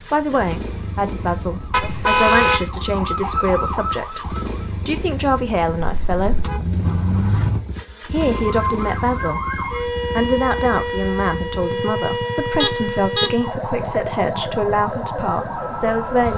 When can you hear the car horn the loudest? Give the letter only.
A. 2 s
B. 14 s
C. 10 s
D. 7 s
A.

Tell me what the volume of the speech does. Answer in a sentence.
The loudness of the speech stays about the same.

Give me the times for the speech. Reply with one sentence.
The speech can be heard from 0.1 to 6.5 s and from 8.1 to 16.3 s.